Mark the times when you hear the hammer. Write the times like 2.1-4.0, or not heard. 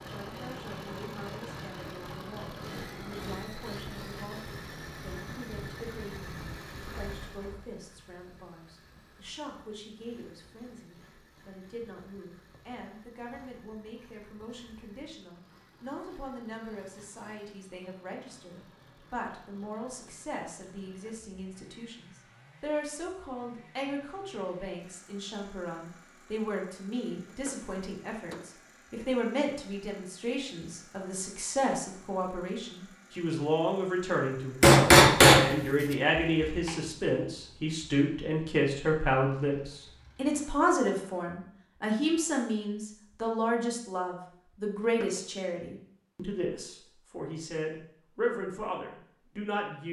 34.6-35.5, 36.2-36.8.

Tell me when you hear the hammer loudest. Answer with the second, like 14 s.
35 s.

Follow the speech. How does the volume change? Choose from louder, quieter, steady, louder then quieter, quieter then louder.
louder.